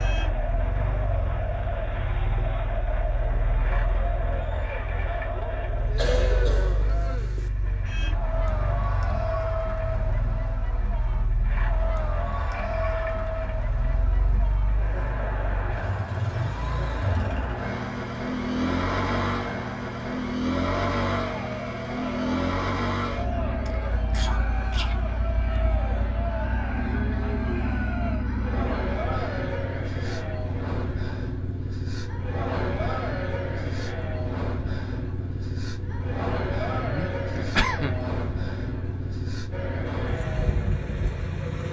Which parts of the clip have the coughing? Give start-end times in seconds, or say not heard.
6.0-7.5, 23.6-24.9, 36.8-38.1.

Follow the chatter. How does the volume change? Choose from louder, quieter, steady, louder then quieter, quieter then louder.
steady.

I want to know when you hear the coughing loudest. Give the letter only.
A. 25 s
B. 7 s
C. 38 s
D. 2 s
C.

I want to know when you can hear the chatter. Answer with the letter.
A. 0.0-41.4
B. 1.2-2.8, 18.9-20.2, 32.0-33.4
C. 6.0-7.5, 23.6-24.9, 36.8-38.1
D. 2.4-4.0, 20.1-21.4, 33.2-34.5
A.